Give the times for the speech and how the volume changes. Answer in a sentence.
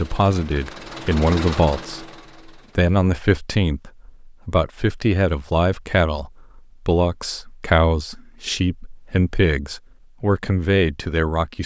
The speech can be heard from 0.0 to 11.6 s, at a steady volume.